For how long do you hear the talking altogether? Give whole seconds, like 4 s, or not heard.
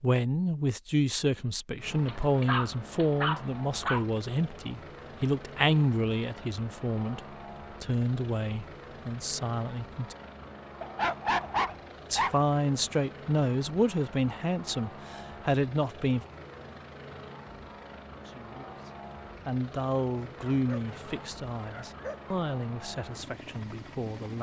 20 s.